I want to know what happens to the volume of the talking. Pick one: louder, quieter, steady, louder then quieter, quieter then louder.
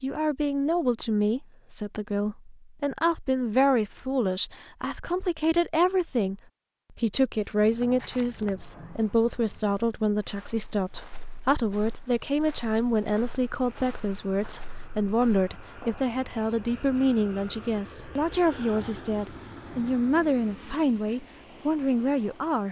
steady.